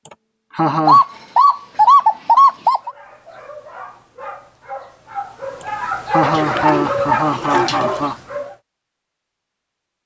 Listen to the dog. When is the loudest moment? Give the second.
7 s.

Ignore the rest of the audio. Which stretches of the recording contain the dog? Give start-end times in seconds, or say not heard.
2.8-8.6.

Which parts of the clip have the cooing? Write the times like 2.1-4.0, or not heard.
0.8-2.9, 6.2-8.0.